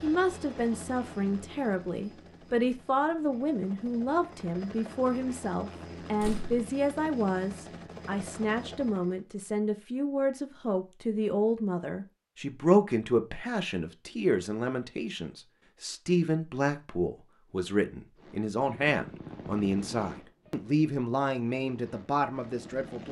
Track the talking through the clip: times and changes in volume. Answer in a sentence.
You can hear the talking from 0.0 to 23.0 s, at a steady volume.